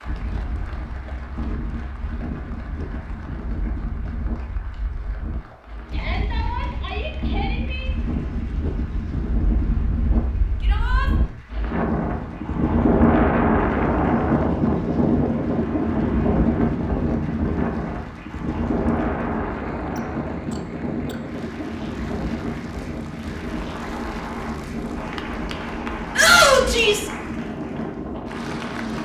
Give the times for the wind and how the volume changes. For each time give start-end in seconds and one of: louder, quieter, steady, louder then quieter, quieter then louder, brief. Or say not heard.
0.0-29.0 louder then quieter.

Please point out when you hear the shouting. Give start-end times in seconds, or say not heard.
5.9-7.9, 10.6-11.1, 26.1-27.1.